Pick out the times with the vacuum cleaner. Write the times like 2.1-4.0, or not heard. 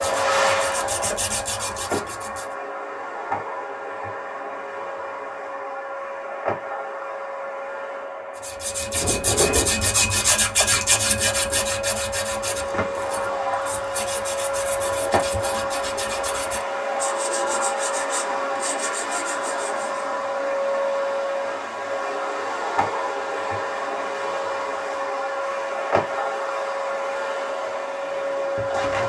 0.0-29.0.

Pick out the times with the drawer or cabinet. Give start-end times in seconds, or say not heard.
9.0-9.8.